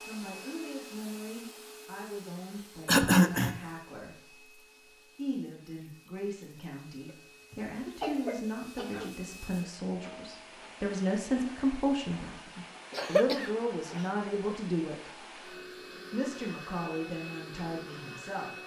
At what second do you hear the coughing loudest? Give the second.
3 s.